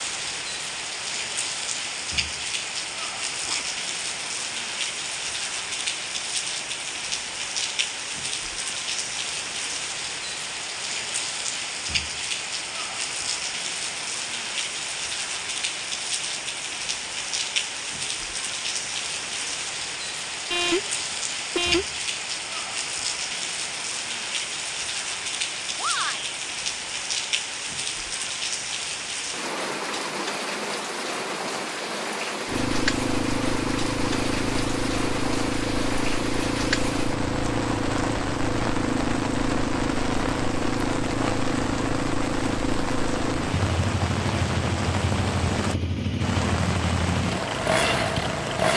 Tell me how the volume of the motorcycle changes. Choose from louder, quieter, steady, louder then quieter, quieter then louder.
steady.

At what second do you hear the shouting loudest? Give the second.
26 s.